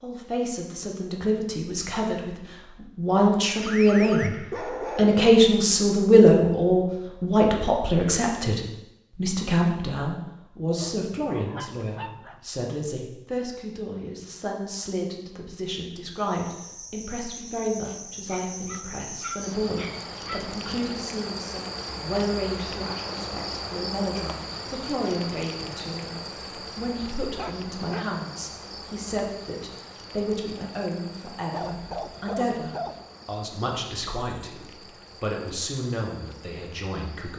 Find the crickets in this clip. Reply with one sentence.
The crickets can be heard from 16.1 to 37.3 s.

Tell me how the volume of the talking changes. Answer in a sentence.
The loudness of the talking goes down.